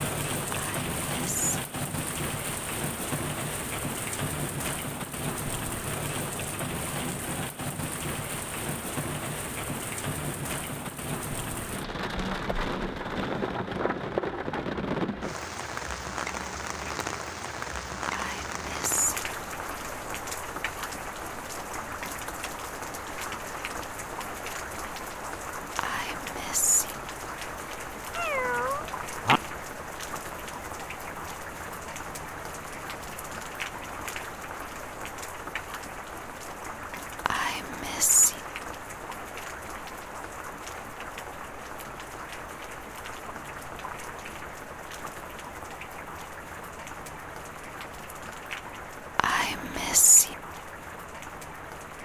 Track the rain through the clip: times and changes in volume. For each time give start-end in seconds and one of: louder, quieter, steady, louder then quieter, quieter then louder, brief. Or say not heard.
0.0-52.0 quieter.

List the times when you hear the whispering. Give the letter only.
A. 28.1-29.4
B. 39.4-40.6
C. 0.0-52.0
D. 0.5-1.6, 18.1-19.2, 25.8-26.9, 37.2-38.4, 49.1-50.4
D.